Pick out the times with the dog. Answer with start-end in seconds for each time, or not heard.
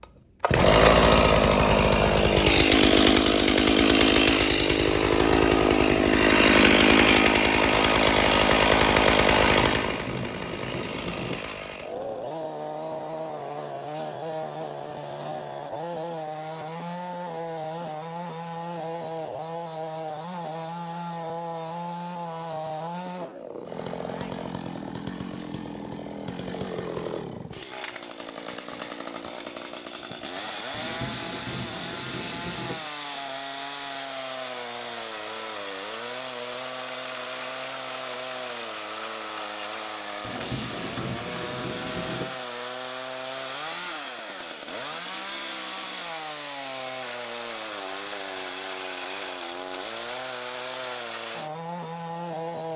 not heard.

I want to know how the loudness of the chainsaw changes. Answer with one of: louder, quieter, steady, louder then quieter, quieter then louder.
quieter.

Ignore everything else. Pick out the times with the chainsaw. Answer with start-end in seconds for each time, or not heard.
0.0-52.7.